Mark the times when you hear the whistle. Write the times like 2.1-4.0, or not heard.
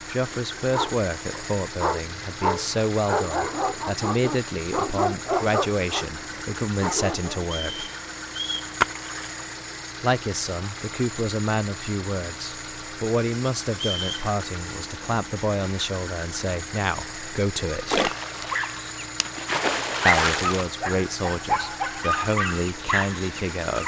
7.4-8.7, 13.7-14.3.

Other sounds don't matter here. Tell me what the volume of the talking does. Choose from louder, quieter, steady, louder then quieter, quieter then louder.
steady.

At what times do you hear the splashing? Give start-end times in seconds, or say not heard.
8.8-9.4, 17.9-20.6.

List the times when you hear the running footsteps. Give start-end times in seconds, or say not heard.
not heard.